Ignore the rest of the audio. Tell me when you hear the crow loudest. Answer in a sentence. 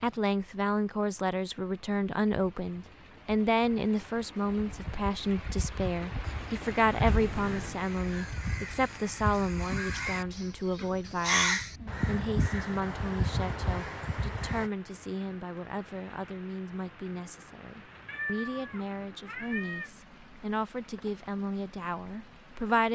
The volume of the crow peaks at 11 seconds.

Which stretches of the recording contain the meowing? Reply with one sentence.
The meowing can be heard from 7.0 to 7.8 s and from 18.1 to 19.9 s.